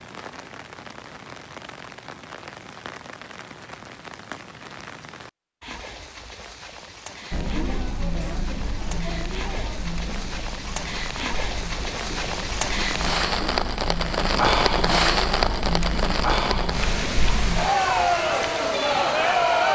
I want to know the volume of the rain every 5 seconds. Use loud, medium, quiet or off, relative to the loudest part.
quiet, quiet, loud, loud.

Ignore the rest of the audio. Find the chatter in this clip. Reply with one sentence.
The chatter can be heard from 7.3 to 19.7 s.